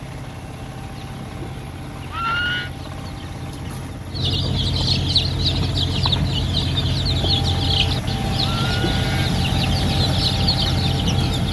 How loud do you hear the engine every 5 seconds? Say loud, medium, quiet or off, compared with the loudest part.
medium, loud, loud.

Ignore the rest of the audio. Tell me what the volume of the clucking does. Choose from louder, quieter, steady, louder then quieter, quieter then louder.
louder.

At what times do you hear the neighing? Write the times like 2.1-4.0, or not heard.
2.1-2.7, 8.4-9.3.